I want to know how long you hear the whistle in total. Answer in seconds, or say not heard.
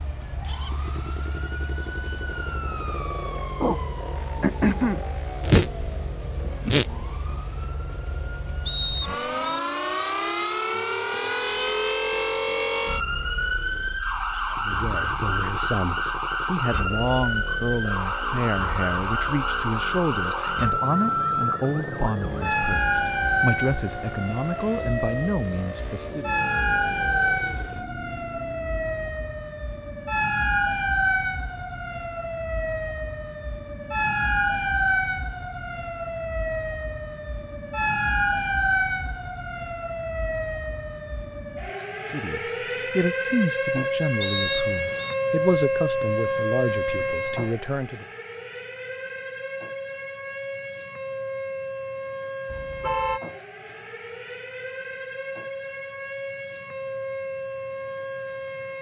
2 s.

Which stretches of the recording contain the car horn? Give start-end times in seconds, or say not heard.
52.5-53.2.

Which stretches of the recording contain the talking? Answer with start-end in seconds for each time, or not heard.
14.5-26.4, 42.0-48.0.